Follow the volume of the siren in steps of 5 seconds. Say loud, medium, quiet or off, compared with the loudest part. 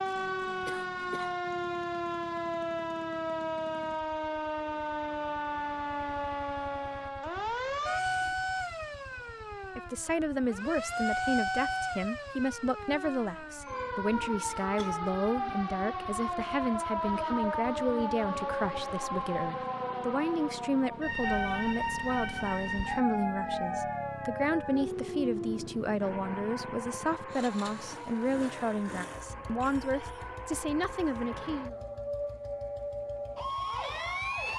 loud, loud, loud, loud, loud, medium, loud.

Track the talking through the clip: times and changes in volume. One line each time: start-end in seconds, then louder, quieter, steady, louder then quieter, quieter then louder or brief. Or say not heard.
9.8-31.8 steady.